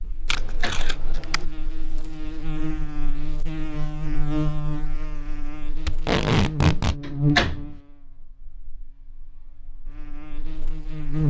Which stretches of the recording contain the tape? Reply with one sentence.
The tape can be heard from 0.2 to 1.4 s and from 5.8 to 7.0 s.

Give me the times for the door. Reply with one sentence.
You can hear the door from 0.0 to 0.9 s and from 6.8 to 7.8 s.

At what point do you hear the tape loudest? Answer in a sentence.
The volume of the tape peaks at 6 seconds.